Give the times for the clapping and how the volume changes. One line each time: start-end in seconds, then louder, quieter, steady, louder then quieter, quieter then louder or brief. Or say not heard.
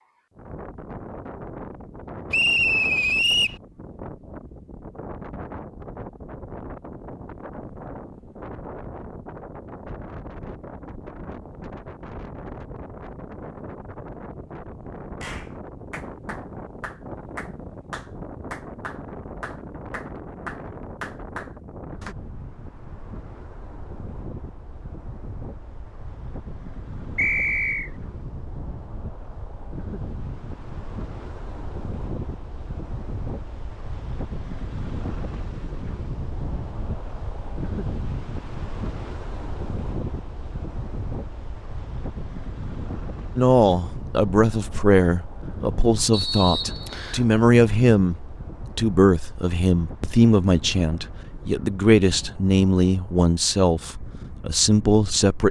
15.2-22.1 louder.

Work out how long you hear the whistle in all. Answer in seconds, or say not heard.
3 s.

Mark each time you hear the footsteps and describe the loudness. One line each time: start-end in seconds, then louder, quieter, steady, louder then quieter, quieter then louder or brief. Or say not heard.
not heard.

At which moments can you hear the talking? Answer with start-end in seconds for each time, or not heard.
43.4-55.4.